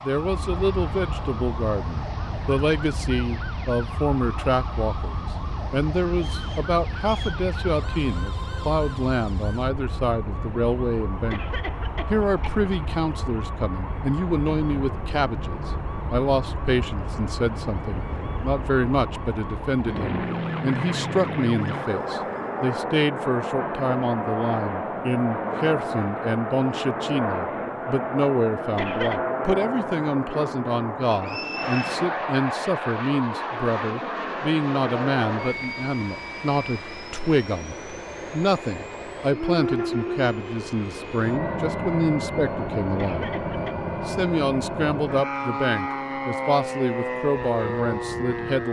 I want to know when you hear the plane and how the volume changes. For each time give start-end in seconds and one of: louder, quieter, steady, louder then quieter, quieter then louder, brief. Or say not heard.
0.1-48.6 louder.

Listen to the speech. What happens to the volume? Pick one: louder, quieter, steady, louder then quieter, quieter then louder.
steady.